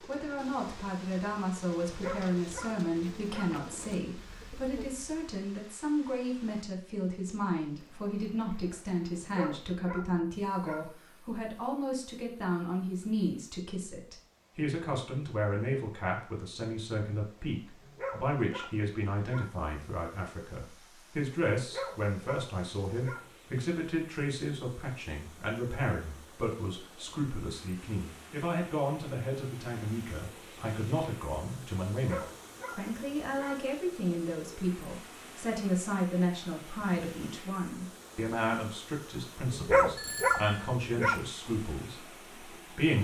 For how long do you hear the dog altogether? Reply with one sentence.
You can hear the dog for 10 seconds altogether.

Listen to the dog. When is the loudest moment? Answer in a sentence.
The volume of the dog peaks at 40 seconds.